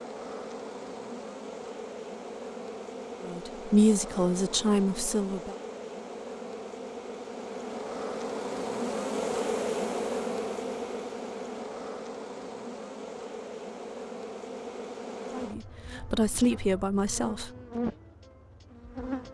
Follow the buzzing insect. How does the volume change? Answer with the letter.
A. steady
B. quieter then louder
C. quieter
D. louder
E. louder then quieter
E.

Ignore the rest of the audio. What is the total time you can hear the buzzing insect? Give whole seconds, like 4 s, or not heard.
19 s.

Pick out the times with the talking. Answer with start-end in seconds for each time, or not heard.
3.2-5.5, 15.3-17.5.